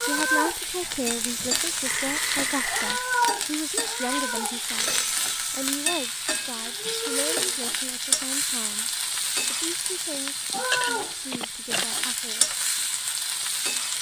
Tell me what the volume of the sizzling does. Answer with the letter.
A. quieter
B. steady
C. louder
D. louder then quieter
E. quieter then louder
B.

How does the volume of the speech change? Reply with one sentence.
The volume of the speech goes down.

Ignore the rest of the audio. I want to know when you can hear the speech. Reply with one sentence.
You can hear the speech from 0.0 to 4.9 s and from 5.5 to 12.6 s.